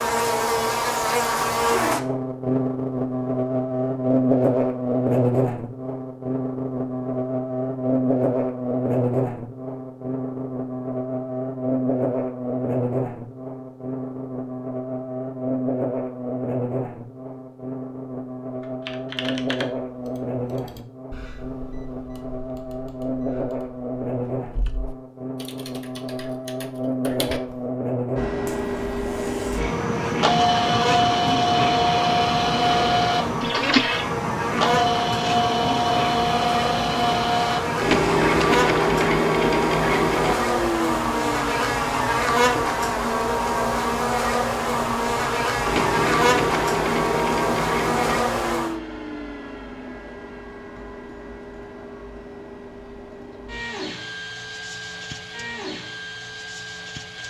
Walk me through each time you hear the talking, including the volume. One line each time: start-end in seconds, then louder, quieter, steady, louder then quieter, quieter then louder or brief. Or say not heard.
not heard.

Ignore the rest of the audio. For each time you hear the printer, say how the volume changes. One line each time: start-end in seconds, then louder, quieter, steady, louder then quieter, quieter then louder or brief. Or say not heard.
28.1-57.2 quieter.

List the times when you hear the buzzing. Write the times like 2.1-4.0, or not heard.
0.0-48.8.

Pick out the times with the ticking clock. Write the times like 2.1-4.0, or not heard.
not heard.